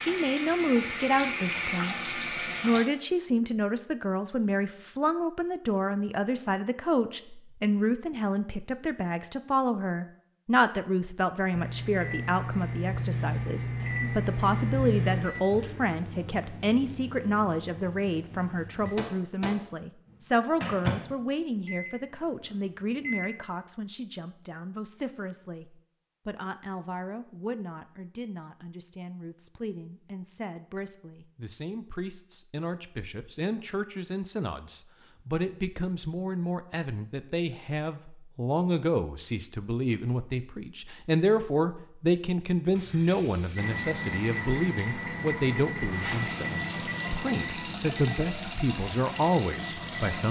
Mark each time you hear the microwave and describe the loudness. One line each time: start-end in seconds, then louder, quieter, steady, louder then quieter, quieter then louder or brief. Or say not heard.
11.5-23.3 quieter then louder
43.5-50.2 quieter.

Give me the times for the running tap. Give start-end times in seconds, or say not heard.
0.0-2.9, 42.7-50.2.